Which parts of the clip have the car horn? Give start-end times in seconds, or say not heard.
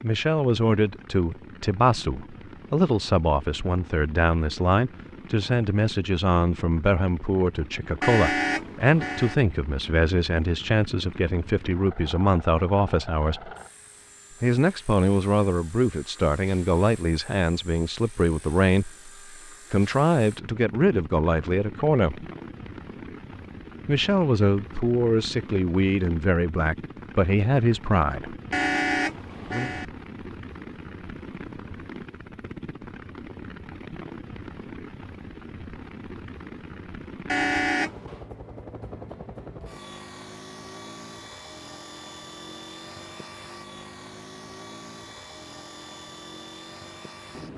8.0-9.3, 28.5-29.9, 37.2-38.2.